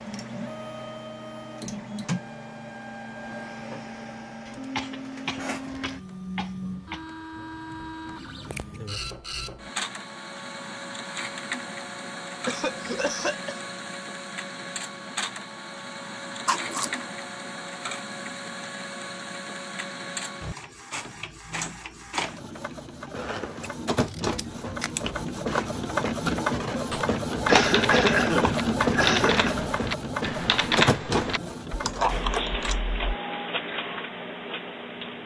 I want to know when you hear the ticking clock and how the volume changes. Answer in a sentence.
The ticking clock can't be heard in this clip.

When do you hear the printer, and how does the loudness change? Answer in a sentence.
The printer can be heard from 0.0 to 35.2 s, getting louder.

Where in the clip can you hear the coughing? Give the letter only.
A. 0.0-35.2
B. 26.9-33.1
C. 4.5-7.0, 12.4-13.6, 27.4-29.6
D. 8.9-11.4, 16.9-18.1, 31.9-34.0
C.